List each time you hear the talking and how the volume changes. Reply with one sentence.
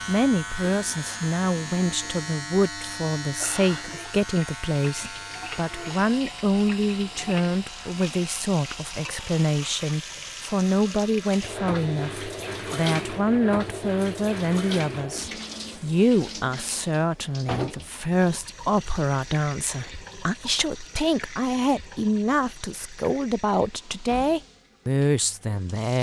The talking can be heard from 0.1 to 25.9 s, at a steady volume.